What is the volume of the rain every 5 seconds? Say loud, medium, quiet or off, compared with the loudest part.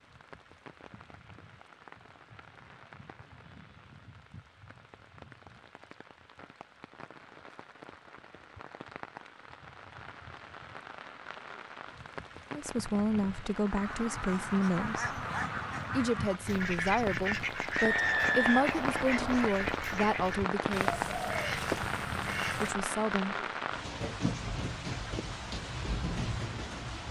quiet, quiet, medium, loud, loud, loud.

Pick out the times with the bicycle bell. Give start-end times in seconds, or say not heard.
not heard.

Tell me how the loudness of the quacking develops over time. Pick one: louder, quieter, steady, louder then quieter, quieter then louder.
steady.